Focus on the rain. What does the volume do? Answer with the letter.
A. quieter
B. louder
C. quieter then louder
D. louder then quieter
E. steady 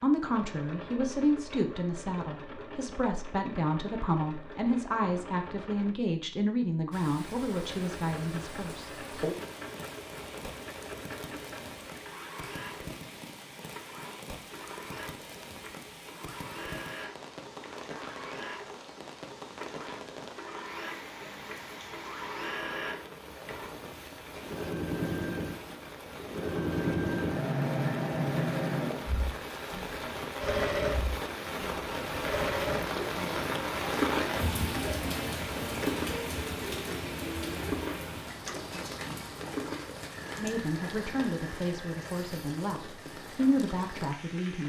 D.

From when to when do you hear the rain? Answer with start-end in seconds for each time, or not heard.
6.9-44.6.